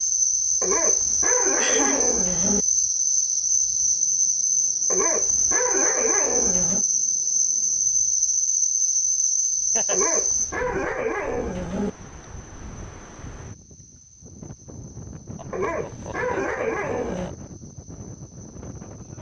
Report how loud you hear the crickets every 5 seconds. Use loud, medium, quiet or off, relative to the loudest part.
loud, loud, medium, quiet.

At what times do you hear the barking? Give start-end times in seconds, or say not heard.
0.6-2.6, 4.9-6.8, 9.9-11.9, 15.5-17.3.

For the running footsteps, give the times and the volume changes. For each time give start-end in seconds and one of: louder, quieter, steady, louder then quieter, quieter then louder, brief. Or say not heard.
not heard.